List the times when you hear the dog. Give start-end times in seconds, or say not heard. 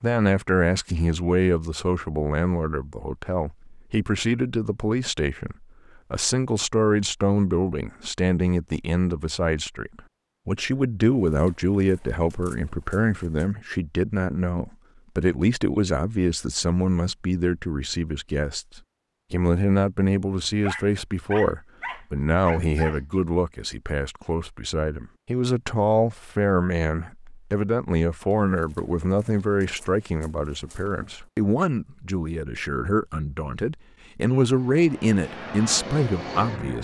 20.6-23.0.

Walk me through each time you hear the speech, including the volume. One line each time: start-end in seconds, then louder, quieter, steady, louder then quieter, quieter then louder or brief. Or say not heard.
0.0-36.7 steady.